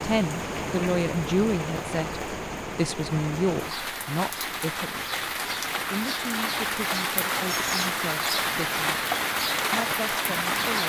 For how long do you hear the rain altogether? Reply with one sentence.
The rain can be heard for 11 seconds in total.